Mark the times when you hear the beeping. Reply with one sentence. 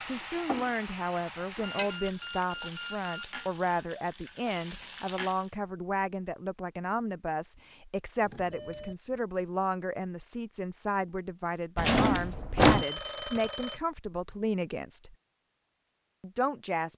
You can hear the beeping from 1.6 to 3.5 s, from 8.2 to 8.9 s and from 12.7 to 13.8 s.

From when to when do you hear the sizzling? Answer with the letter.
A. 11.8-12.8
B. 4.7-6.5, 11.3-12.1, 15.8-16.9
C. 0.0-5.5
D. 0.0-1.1
C.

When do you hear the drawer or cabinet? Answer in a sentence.
You can hear the drawer or cabinet from 11.8 to 12.8 s.